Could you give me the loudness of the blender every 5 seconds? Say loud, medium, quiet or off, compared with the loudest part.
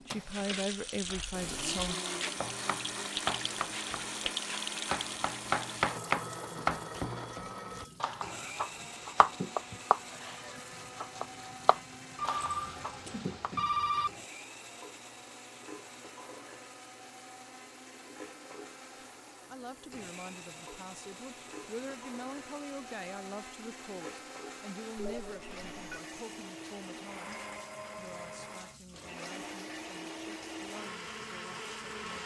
loud, loud, medium, medium, medium, loud, loud.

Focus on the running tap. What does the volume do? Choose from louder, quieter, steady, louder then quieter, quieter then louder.
quieter.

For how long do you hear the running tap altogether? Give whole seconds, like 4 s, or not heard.
32 s.